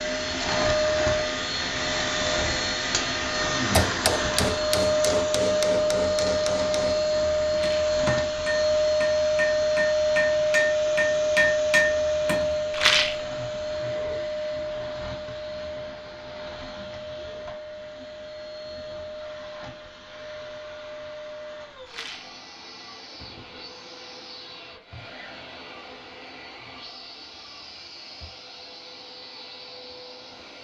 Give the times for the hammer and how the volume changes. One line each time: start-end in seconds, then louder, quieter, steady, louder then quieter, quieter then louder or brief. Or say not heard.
3.8-12.6 quieter then louder.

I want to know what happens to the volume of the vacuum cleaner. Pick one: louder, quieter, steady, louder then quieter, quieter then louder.
quieter.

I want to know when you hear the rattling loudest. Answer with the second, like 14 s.
13 s.